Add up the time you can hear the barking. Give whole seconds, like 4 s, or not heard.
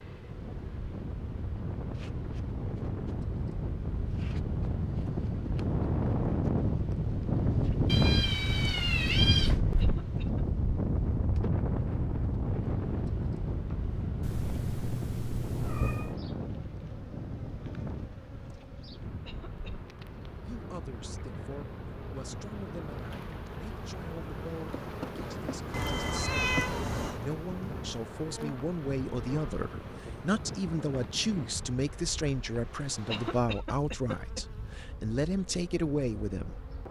not heard.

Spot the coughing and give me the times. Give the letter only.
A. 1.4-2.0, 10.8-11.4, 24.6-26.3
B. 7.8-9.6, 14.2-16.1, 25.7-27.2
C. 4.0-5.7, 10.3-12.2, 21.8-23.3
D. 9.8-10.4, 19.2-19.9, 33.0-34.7
D.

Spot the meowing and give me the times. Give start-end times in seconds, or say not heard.
7.8-9.6, 14.2-16.1, 25.7-27.2.